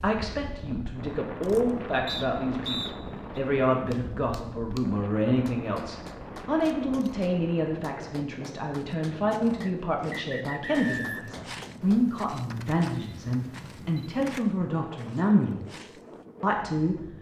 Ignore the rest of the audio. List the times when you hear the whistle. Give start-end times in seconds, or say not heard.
2.0-3.4, 9.6-11.4.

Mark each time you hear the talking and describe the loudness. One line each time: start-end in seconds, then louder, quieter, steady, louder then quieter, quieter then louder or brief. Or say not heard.
0.0-17.0 steady.